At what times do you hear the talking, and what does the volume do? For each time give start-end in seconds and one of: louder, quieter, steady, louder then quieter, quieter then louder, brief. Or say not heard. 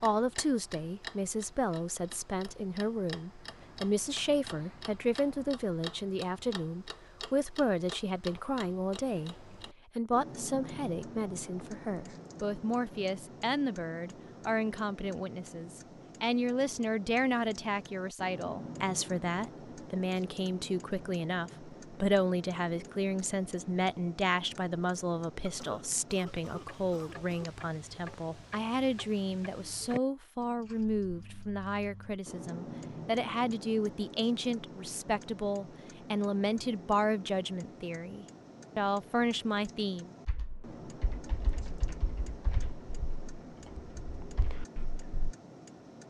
0.0-40.1 steady.